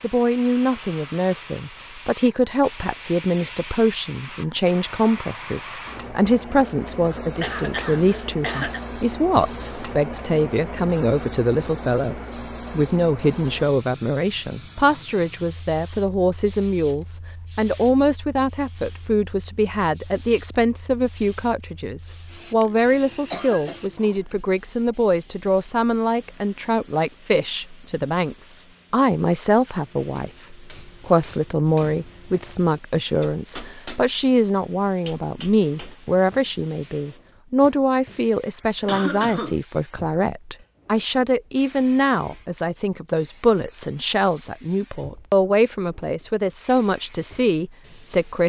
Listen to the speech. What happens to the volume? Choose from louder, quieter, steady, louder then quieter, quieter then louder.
steady.